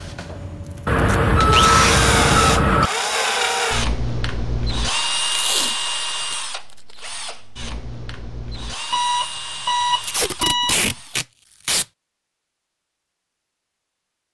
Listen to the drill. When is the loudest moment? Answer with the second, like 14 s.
2 s.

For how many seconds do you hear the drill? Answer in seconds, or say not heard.
11 s.